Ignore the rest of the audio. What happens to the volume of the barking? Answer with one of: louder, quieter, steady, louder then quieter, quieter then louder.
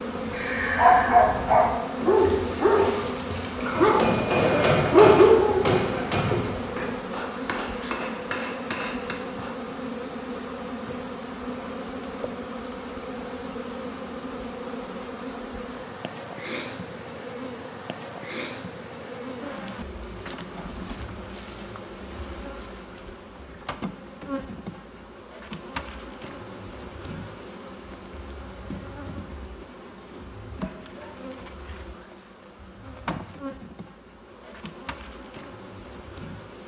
quieter then louder.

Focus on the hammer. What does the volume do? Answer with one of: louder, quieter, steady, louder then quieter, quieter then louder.
quieter.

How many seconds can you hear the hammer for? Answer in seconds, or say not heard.
6 s.